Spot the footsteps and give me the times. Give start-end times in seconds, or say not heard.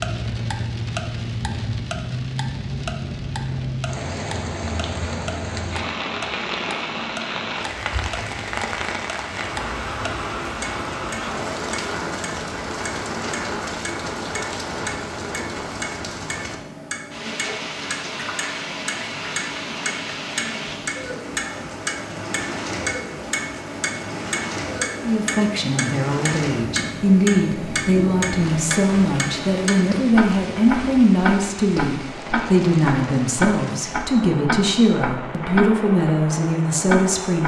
not heard.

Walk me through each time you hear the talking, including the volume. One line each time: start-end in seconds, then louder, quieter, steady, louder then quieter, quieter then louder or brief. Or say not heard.
25.0-37.4 steady.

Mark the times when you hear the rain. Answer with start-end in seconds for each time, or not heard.
0.0-37.4.